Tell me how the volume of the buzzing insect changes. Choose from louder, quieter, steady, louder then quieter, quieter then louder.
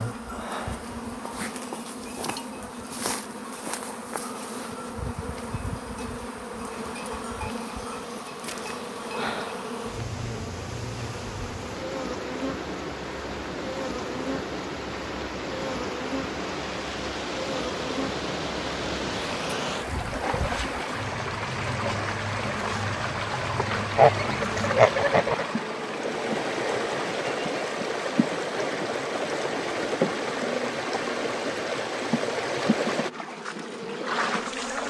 steady.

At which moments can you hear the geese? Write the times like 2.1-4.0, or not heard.
23.6-25.4.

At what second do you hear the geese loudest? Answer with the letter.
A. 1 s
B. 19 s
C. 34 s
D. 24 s
D.